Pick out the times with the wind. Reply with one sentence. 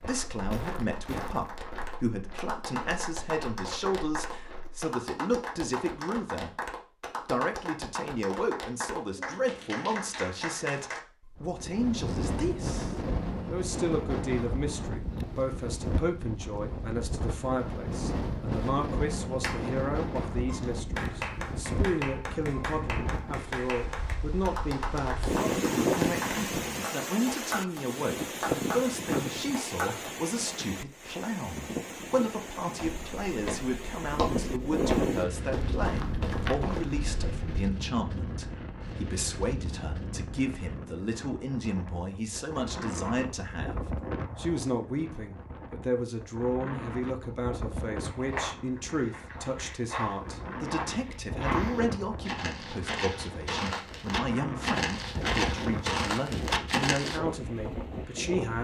The wind can be heard from 11.3 to 58.6 s.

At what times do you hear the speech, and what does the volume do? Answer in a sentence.
The speech can be heard from 0.0 to 58.6 s, at a steady volume.